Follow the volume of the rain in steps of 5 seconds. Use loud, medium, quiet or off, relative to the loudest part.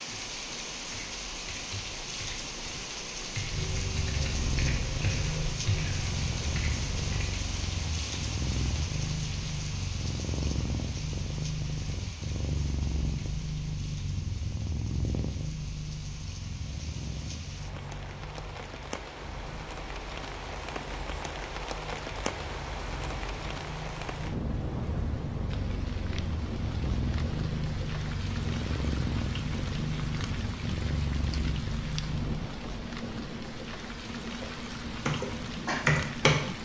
loud, loud, medium, medium, loud, loud, loud, loud.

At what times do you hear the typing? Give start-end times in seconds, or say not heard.
0.1-7.2, 34.4-36.4.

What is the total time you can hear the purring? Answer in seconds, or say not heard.
29 s.